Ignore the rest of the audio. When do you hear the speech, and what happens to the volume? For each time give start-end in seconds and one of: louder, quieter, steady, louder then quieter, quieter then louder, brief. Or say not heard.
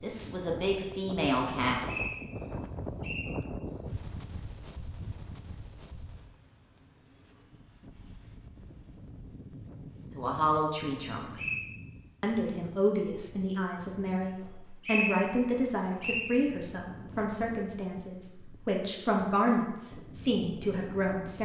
0.0-2.0 brief
10.2-11.3 brief
12.2-21.4 steady.